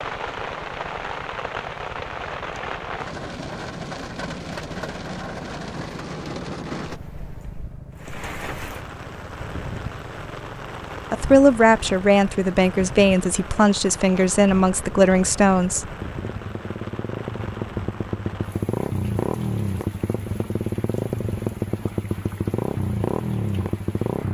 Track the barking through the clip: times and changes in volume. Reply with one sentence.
The barking can't be heard in this clip.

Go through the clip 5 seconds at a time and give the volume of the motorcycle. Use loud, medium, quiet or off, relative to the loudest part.
quiet, quiet, quiet, loud, loud.